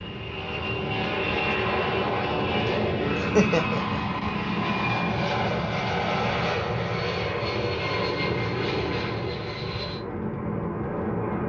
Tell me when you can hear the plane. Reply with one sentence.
The plane can be heard from 0.0 to 11.4 s.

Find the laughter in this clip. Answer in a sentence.
The laughter can be heard from 2.6 to 4.2 s.